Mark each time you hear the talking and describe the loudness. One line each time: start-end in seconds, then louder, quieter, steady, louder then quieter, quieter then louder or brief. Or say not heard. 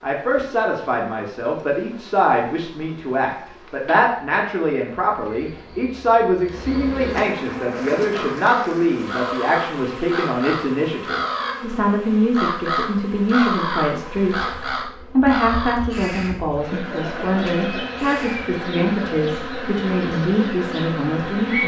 0.0-21.6 steady.